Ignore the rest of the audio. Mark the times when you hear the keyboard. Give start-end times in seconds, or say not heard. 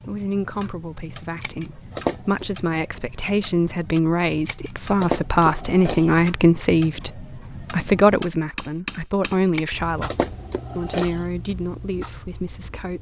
not heard.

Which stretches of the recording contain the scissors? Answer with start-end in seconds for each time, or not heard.
1.4-2.5, 4.5-6.2, 9.5-11.2.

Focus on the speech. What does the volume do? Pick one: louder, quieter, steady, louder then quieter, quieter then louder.
louder then quieter.